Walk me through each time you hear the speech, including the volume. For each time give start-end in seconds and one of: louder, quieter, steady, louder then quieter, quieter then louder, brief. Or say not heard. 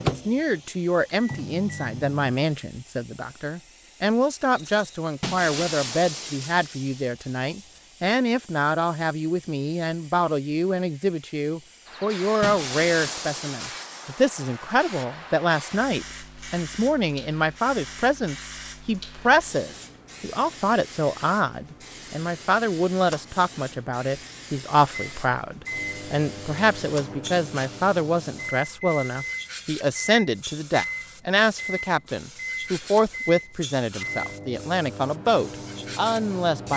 0.1-36.7 steady.